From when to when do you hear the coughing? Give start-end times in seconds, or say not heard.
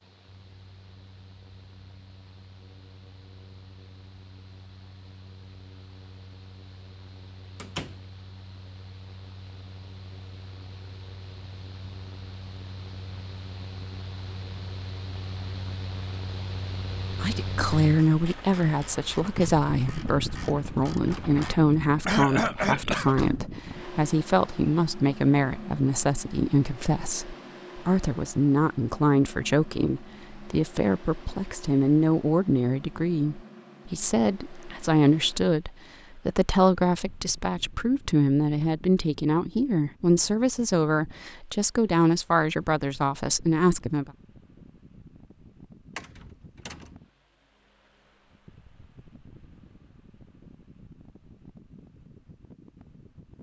22.1-23.1.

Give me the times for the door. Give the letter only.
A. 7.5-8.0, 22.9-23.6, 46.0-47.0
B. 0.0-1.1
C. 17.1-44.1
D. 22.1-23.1
A.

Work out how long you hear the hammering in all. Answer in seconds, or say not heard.
not heard.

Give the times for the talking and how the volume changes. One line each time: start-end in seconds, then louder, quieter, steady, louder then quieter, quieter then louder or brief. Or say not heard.
17.1-44.1 steady.